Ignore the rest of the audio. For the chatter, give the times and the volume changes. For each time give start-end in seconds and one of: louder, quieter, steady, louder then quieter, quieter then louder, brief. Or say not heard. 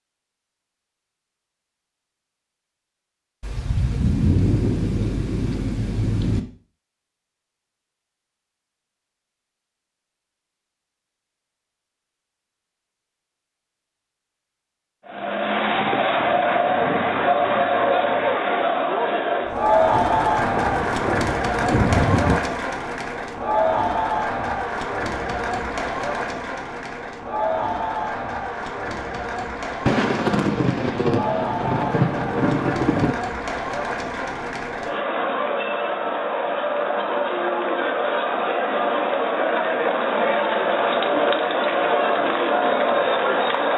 15.1-43.7 quieter then louder.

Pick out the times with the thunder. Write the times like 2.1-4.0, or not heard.
3.4-6.4, 19.9-22.4, 29.9-33.1.